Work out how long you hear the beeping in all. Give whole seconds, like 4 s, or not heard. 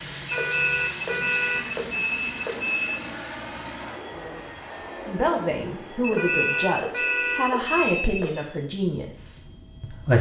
5 s.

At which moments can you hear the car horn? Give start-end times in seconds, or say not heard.
0.3-1.7, 6.2-7.5.